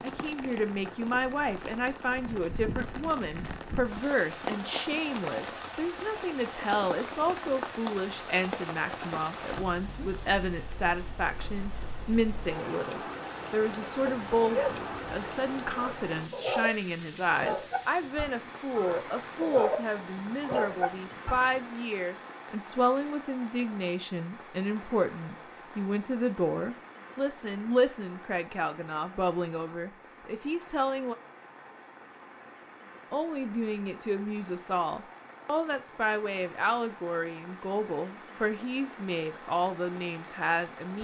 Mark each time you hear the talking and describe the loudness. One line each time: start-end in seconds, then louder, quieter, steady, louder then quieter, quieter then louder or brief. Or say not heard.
0.0-31.1 steady
33.1-40.9 steady.